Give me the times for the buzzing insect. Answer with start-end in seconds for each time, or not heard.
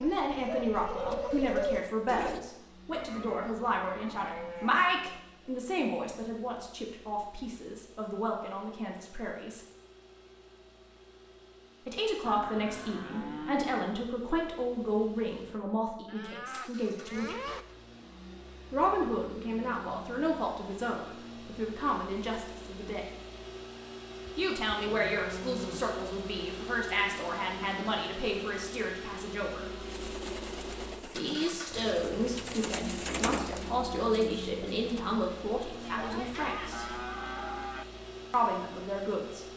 not heard.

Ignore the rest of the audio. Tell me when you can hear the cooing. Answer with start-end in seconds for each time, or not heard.
0.0-2.4, 29.8-35.0.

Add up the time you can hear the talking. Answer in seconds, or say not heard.
32 s.